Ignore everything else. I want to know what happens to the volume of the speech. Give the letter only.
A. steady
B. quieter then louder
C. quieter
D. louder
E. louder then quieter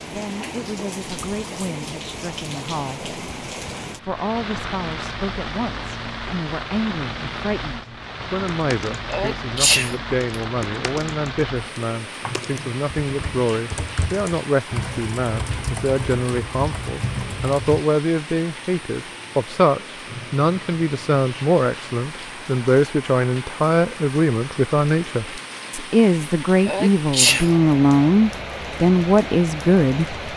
D.